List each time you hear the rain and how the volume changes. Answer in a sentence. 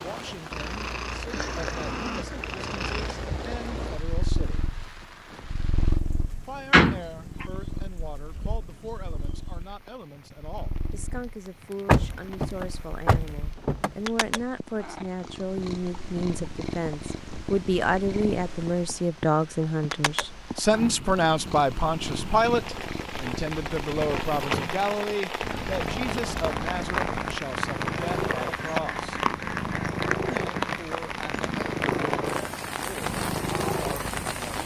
You can hear the rain from 0.0 to 34.6 s, getting quieter then louder.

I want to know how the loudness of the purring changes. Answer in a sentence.
The volume of the purring goes down, then up.